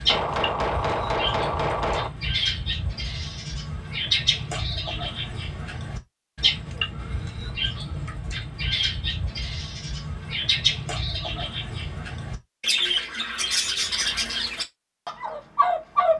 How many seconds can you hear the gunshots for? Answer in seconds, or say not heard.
2 s.